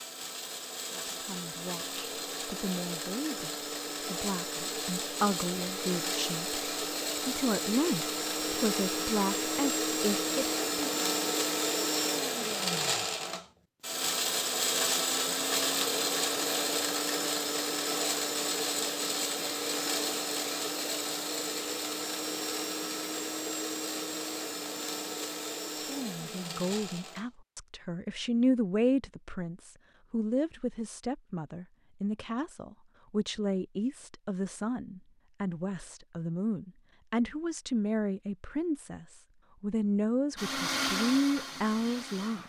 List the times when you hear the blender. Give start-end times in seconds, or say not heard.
0.0-27.3, 40.4-42.4.